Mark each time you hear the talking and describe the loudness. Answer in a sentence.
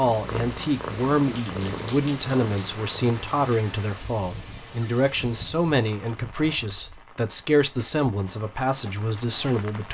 You can hear the talking from 0.0 to 9.9 s, at a steady volume.